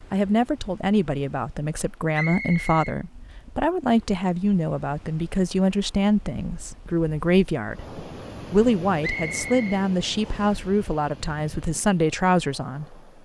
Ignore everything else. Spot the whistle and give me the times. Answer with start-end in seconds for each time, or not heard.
2.1-3.0, 9.0-10.6.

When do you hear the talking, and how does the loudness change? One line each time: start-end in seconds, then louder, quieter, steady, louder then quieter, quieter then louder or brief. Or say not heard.
0.1-13.0 steady.